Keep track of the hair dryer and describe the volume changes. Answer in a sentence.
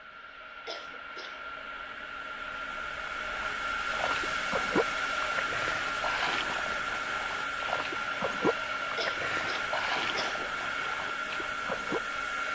The volume of the hair dryer goes up.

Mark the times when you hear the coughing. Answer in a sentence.
You can hear the coughing from 0.7 to 1.4 s and from 8.9 to 10.5 s.